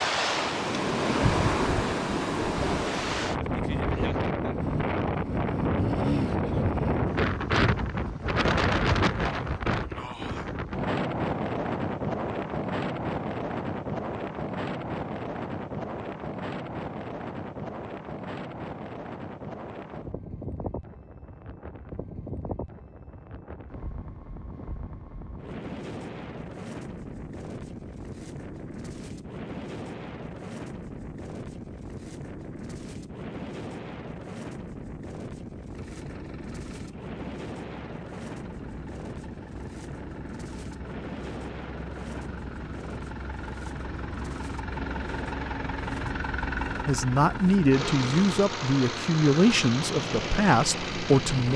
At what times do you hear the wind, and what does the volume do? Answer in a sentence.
You can hear the wind from 0.0 to 51.5 s, getting quieter.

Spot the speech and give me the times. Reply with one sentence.
The speech can be heard from 46.9 to 51.5 s.